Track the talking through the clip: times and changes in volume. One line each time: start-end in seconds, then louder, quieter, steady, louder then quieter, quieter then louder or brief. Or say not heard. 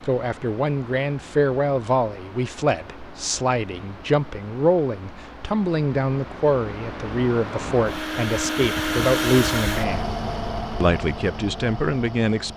0.1-10.1 steady
10.8-12.5 brief.